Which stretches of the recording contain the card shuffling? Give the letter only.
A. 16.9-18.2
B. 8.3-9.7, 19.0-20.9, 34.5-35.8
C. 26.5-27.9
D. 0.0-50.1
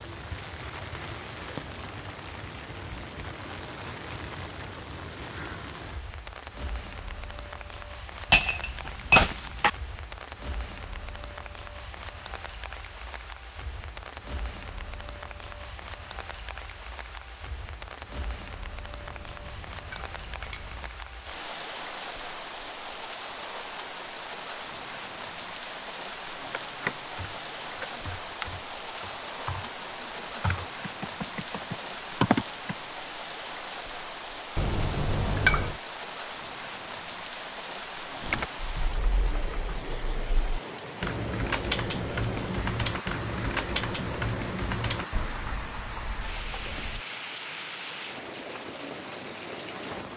C.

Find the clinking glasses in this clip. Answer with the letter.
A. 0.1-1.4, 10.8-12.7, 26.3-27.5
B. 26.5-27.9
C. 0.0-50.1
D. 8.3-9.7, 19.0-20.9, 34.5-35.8
D.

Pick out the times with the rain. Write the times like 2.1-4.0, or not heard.
0.0-50.1.